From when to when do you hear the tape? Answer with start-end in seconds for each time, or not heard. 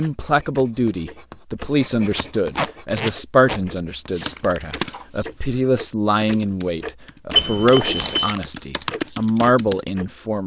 2.1-3.6, 8.0-8.4.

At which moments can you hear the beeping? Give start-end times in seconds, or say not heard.
7.3-8.3.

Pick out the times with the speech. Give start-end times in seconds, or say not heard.
0.0-10.4.